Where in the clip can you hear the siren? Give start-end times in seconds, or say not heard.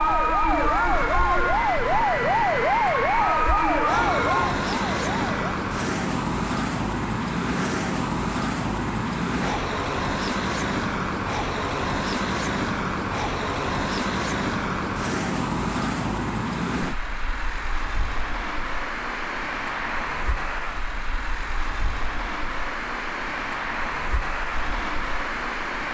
0.0-5.3.